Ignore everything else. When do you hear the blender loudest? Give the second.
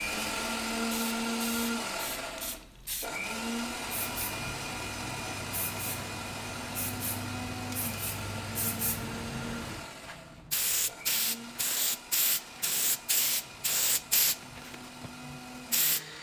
1 s.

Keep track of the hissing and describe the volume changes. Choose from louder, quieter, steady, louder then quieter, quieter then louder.
louder.